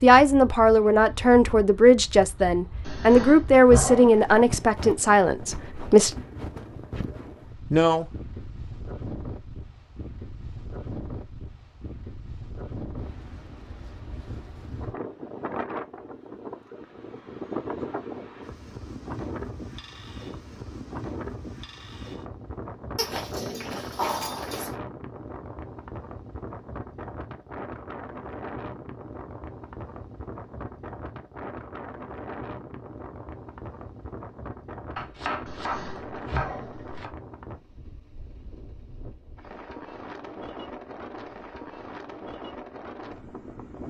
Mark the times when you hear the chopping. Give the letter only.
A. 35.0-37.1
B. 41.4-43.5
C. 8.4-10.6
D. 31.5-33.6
A.